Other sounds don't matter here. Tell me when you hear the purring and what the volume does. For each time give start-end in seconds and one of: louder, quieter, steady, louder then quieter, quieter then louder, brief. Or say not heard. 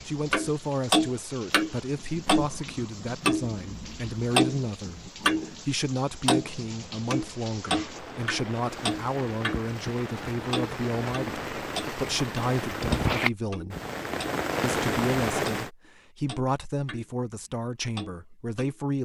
not heard.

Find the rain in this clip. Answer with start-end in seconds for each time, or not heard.
0.0-15.7.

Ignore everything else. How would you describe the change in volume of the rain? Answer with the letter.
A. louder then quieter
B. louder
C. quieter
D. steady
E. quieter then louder
B.